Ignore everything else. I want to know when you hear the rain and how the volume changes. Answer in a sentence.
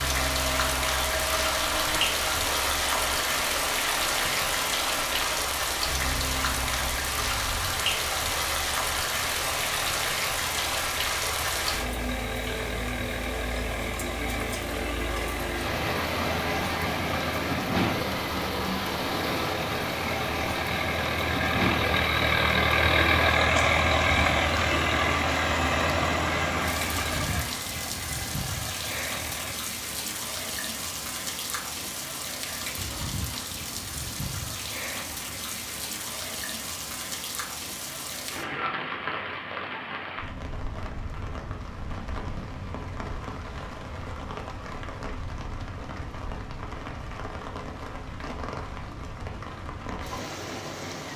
You can hear the rain from 0.0 to 51.1 s, getting quieter.